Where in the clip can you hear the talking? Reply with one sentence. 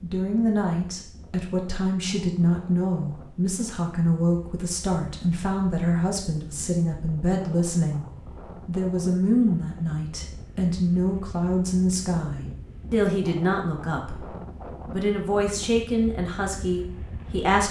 The talking can be heard from 0.0 to 8.1 s and from 8.7 to 17.6 s.